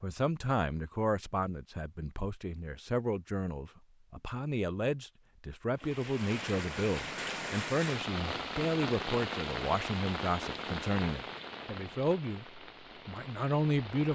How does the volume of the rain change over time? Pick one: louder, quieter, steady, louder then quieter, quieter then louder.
quieter.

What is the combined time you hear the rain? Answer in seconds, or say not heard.
8 s.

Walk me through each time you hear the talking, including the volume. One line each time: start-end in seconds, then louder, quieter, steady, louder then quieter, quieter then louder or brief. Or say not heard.
0.0-14.1 steady.